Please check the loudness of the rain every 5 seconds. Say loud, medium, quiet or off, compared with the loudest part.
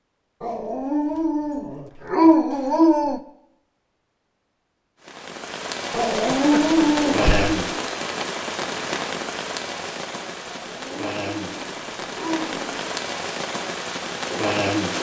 off, loud, loud.